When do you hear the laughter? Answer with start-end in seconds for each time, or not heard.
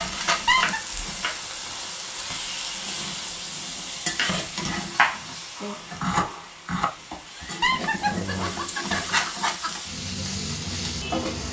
0.2-0.8, 7.3-9.7.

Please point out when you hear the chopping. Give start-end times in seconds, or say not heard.
0.1-1.9, 4.2-8.7.